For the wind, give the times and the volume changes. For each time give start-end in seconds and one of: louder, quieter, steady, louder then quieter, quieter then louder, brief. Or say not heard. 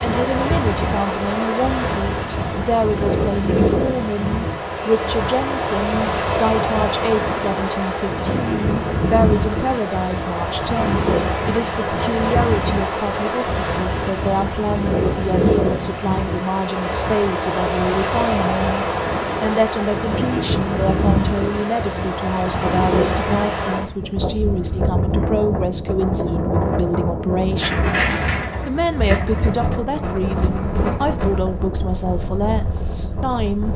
0.0-33.7 steady.